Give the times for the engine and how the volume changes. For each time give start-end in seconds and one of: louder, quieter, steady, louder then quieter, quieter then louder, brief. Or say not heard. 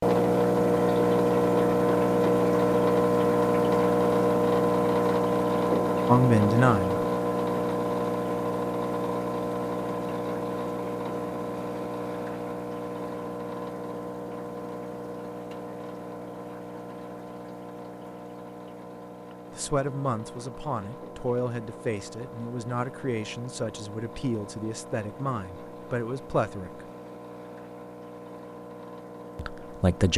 0.0-30.1 quieter.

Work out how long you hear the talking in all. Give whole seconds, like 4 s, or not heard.
9 s.